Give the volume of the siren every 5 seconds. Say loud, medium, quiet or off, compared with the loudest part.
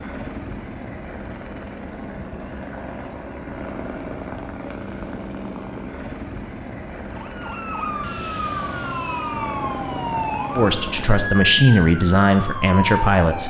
off, loud, loud.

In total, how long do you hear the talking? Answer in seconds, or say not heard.
3 s.